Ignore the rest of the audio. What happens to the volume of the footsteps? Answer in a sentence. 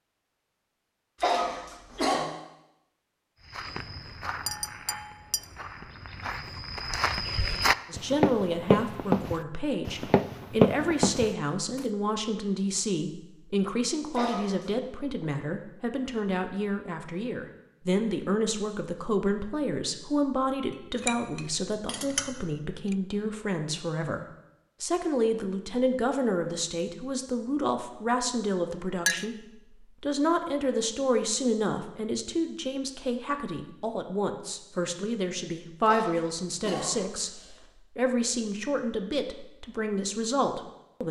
The volume of the footsteps goes up.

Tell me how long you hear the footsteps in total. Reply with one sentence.
The footsteps can be heard for 8 seconds in total.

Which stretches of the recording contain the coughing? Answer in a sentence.
The coughing can be heard from 1.2 to 2.3 s, from 14.1 to 14.7 s and from 35.9 to 37.6 s.